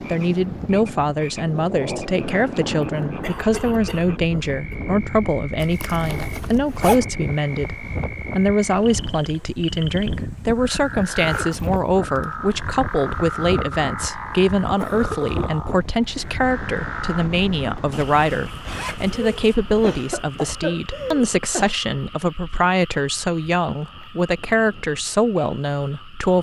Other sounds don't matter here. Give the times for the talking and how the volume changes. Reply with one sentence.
The talking can be heard from 0.1 to 26.3 s, at a steady volume.